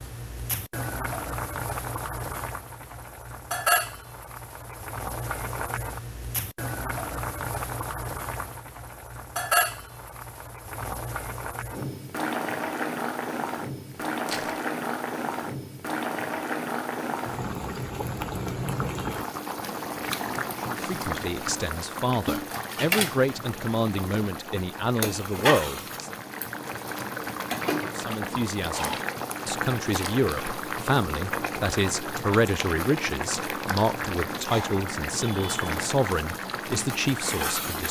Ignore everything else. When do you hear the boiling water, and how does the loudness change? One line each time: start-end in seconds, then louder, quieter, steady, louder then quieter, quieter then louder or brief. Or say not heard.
0.0-37.8 steady.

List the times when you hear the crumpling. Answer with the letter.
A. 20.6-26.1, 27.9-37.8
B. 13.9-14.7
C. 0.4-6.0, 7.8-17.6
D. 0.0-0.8
B.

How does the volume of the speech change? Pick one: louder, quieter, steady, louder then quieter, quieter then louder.
steady.